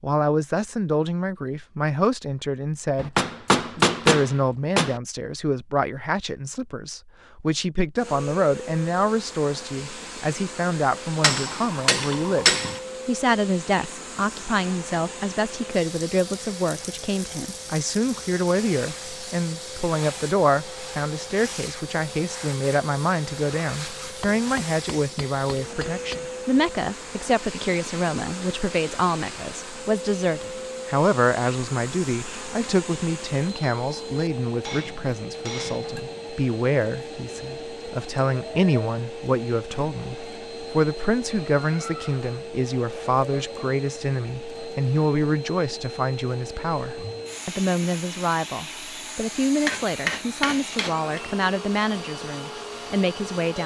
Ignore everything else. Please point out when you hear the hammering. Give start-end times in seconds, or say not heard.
3.0-5.0, 11.2-12.8, 24.2-26.2, 34.6-36.2, 49.6-51.2.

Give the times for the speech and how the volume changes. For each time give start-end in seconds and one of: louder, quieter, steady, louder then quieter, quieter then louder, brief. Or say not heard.
0.0-53.6 steady.